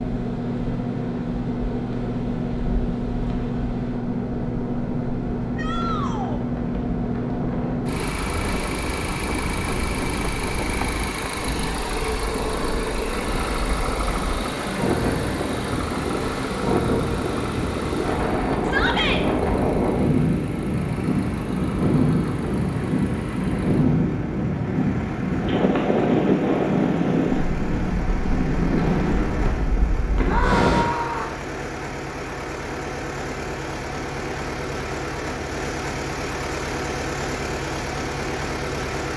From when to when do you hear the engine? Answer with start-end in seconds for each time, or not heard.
0.0-39.1.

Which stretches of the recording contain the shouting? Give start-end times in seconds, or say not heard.
5.5-6.4, 18.6-19.2, 30.2-31.3.